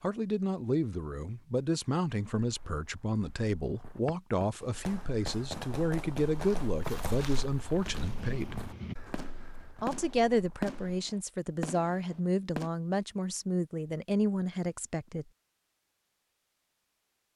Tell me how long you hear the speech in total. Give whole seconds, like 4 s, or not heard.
14 s.